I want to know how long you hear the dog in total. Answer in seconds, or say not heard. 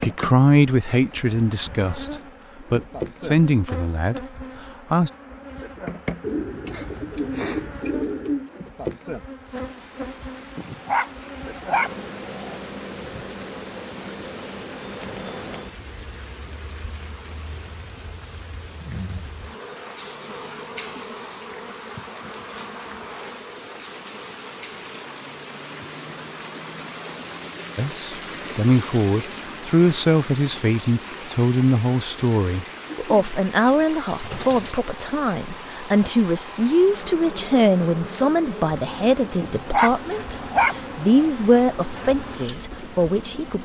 4 s.